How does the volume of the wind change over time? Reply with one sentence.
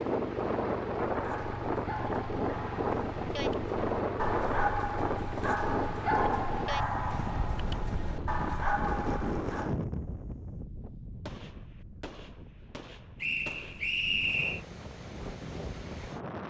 The volume of the wind goes down.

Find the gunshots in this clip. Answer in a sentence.
You can hear the gunshots from 11.2 to 13.9 s.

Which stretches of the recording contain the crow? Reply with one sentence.
You can't hear the crow here.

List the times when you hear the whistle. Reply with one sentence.
You can hear the whistle from 13.2 to 14.6 s.